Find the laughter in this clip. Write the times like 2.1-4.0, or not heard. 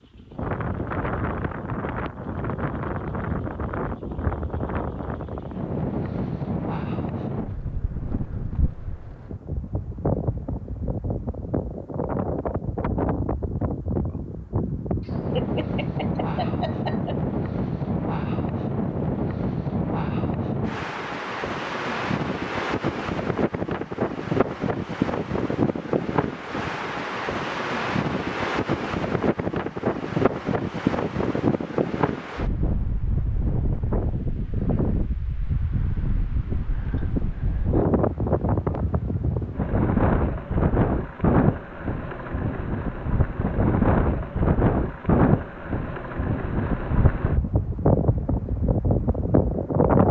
15.1-17.1.